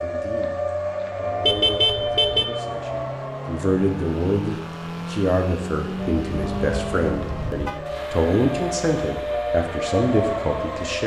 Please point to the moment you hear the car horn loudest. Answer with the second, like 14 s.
2 s.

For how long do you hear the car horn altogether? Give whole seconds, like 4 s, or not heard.
3 s.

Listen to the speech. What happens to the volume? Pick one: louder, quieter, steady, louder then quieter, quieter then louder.
louder.